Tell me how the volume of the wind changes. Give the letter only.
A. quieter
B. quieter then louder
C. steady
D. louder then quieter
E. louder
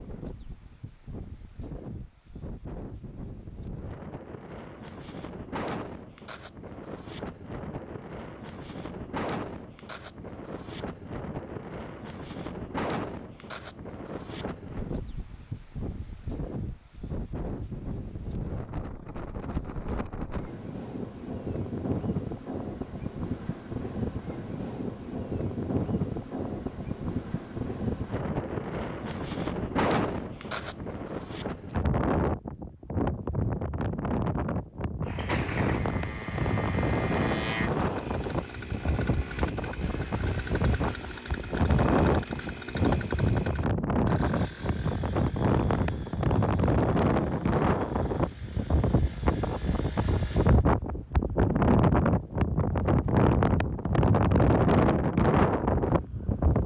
E.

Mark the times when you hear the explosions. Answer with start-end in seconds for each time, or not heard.
not heard.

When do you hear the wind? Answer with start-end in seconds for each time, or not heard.
0.0-56.6.